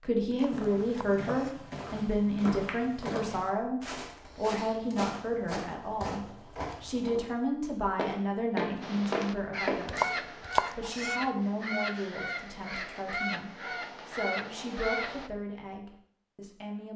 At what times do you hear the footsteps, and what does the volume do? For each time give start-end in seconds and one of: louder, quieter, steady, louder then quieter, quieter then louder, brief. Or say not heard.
0.5-9.8 louder.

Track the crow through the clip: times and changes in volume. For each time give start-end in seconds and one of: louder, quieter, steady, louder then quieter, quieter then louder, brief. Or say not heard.
8.8-15.3 steady.